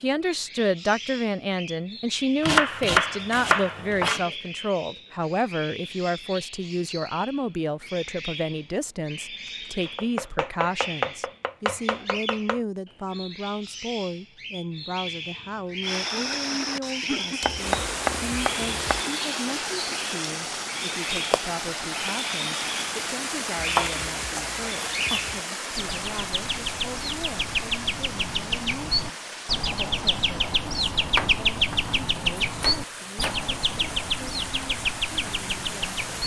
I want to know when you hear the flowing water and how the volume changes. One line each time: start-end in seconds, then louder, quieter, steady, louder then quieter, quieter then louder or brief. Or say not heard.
15.8-36.2 quieter.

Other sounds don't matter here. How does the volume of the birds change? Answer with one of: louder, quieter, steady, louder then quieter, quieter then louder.
louder.